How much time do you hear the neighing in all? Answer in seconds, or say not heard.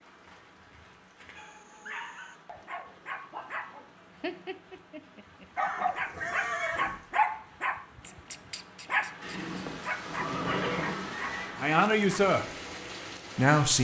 5 s.